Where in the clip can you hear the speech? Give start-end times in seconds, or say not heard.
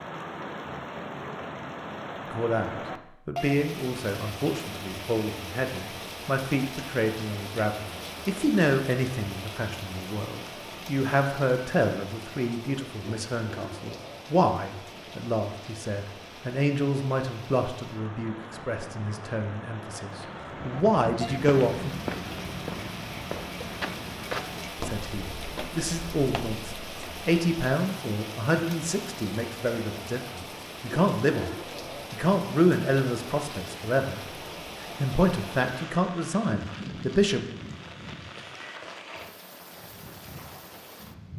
2.3-21.9, 24.9-37.5.